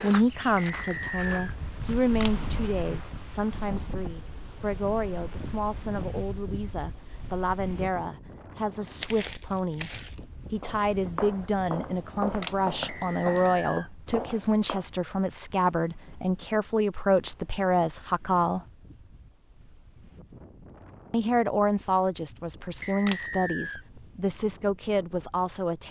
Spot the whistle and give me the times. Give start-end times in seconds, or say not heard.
0.6-1.6, 12.8-13.9, 22.8-23.9.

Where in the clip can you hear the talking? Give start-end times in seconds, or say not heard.
0.0-9.9, 10.5-18.6, 21.1-25.8.